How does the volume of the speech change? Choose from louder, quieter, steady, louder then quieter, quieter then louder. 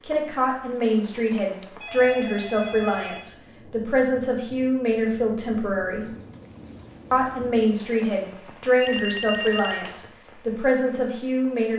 steady.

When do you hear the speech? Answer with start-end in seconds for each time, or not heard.
0.0-6.0, 7.1-11.7.